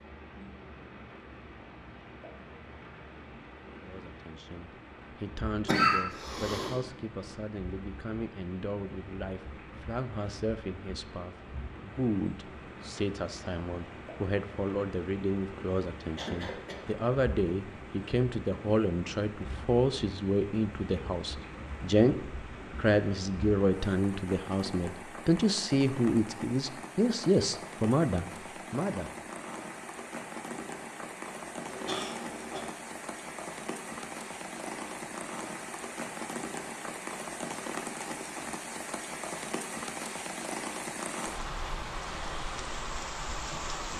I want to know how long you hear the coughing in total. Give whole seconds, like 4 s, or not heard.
3 s.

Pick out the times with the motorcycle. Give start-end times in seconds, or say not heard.
not heard.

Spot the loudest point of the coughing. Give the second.
6 s.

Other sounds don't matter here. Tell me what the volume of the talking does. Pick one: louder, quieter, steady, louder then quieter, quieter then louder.
louder.